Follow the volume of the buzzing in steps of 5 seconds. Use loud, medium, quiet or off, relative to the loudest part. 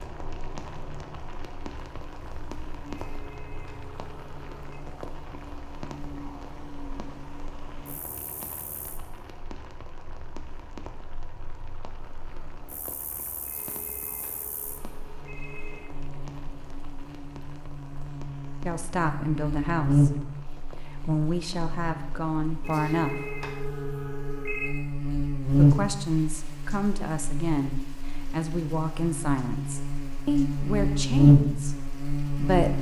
quiet, quiet, quiet, medium, medium, medium, loud.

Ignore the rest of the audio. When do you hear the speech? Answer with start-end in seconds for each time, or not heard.
18.6-23.2, 25.6-32.7.